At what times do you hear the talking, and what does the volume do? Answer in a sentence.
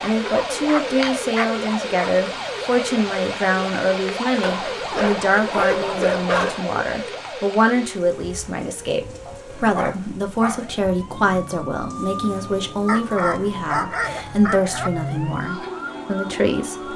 You can hear the talking from 0.0 to 16.9 s, at a steady volume.